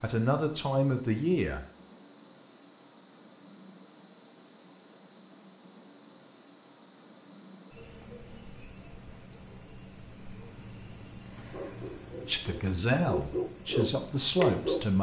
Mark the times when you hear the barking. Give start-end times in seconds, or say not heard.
11.5-14.9.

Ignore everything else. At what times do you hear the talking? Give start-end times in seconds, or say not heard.
0.0-1.6, 12.2-14.9.